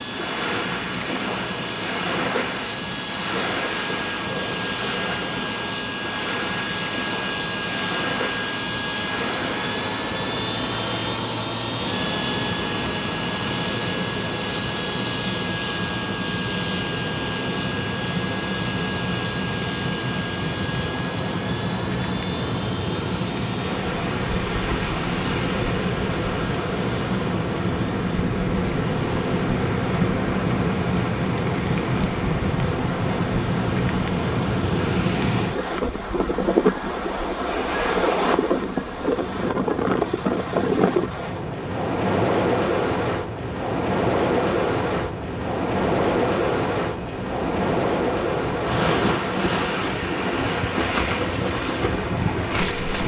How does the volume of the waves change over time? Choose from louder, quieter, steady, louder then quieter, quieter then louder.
louder.